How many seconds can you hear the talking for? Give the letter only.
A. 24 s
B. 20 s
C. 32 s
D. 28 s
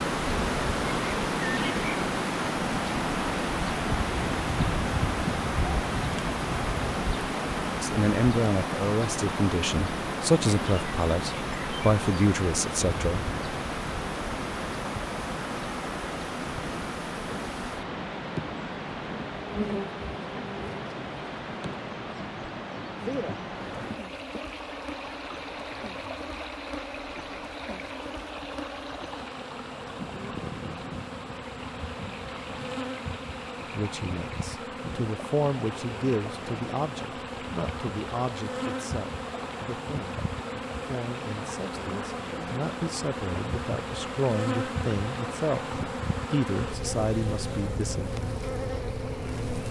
B.